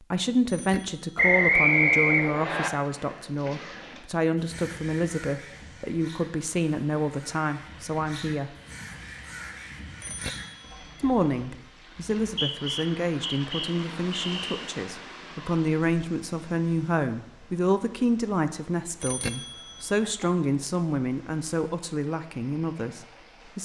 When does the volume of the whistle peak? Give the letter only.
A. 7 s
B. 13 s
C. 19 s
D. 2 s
D.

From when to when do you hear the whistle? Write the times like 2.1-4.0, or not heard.
1.1-2.7, 12.2-14.6.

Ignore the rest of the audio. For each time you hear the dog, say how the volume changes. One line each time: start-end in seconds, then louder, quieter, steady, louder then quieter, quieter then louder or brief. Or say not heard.
not heard.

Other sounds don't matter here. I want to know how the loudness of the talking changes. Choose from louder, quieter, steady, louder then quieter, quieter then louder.
steady.